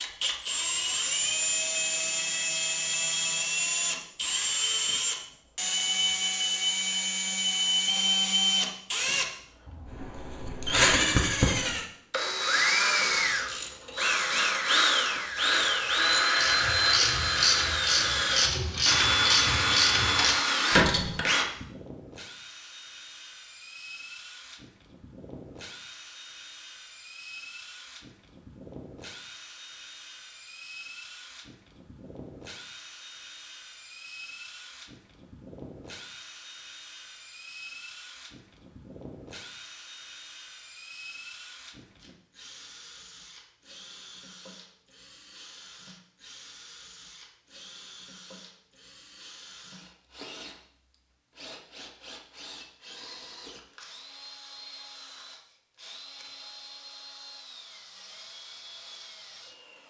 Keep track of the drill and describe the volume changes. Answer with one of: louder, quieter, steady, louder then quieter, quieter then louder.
quieter.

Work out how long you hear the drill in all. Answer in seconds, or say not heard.
60 s.